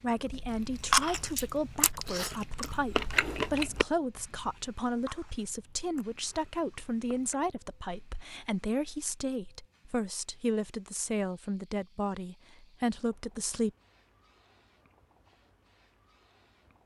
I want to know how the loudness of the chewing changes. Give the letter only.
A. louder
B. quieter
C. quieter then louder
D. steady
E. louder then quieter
B.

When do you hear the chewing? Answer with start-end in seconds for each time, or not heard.
0.2-7.6.